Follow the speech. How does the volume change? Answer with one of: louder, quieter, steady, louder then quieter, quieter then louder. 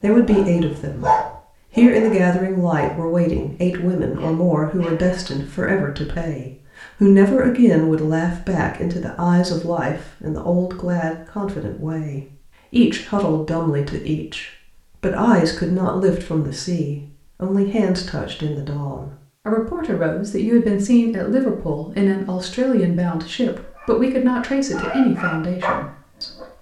steady.